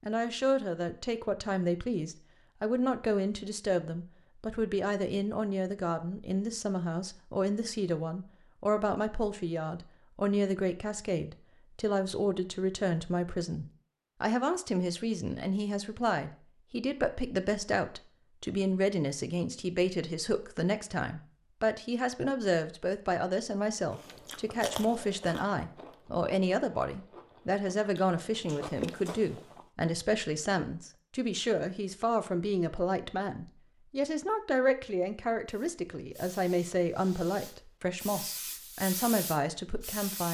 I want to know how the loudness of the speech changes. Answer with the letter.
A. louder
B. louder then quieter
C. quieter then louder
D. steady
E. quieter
D.